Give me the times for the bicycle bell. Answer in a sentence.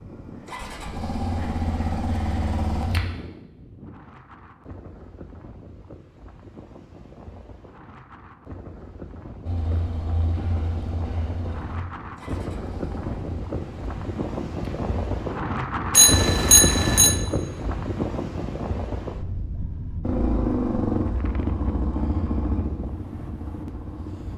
You can hear the bicycle bell from 15.9 to 17.2 s.